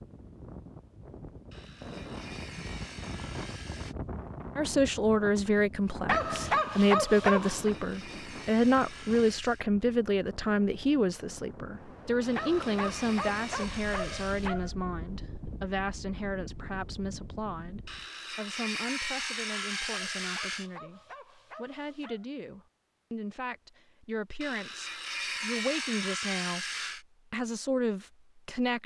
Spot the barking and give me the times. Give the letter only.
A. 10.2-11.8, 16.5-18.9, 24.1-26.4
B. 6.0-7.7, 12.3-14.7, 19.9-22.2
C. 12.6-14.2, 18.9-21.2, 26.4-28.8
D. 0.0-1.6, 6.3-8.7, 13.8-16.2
B.